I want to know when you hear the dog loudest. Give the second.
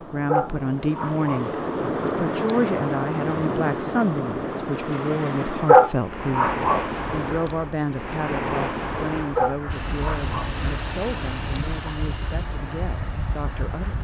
6 s.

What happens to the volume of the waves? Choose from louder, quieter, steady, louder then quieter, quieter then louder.
quieter.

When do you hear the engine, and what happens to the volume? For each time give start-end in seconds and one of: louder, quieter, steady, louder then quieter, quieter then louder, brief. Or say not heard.
9.7-13.9 quieter.